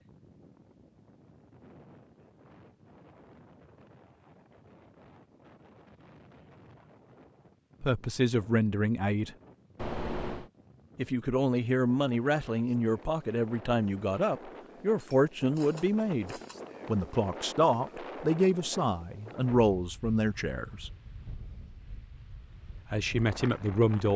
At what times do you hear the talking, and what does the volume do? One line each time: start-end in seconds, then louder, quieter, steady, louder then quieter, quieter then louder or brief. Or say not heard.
7.8-9.3 brief
10.9-20.9 steady
22.9-24.1 brief.